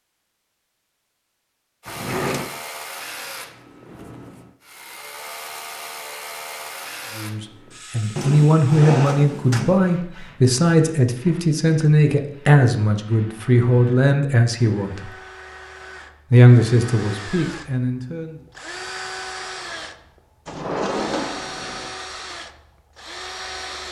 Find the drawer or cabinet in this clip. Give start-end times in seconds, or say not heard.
1.9-2.5, 8.2-9.8, 20.4-21.9.